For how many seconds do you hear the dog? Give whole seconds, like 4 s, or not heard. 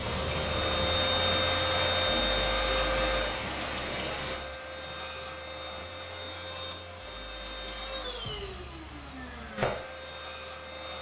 not heard.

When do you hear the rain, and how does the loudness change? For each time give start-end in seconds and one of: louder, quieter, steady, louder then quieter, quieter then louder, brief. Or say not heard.
0.0-10.9 quieter.